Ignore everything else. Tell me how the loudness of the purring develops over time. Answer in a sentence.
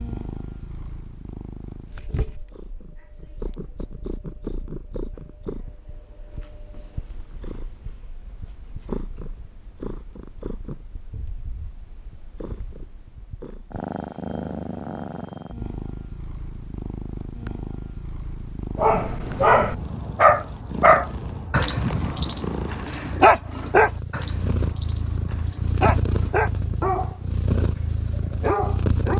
The volume of the purring goes up.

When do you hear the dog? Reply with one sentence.
You can hear the dog from 18.8 to 29.1 s.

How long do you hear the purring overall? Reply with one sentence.
The purring can be heard for 29 seconds in total.